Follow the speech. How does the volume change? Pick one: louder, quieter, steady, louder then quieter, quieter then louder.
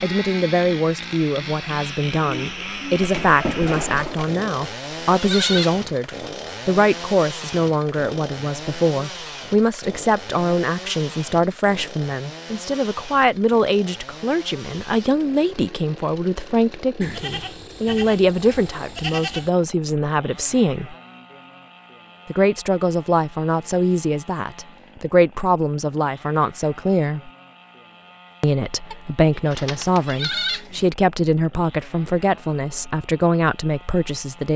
steady.